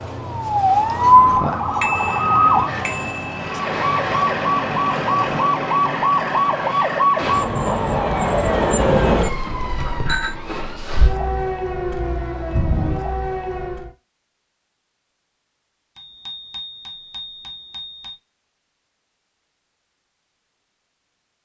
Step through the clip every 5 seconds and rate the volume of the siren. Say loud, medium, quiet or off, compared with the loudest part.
loud, loud, medium, off, off.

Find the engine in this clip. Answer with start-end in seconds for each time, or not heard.
0.0-7.4.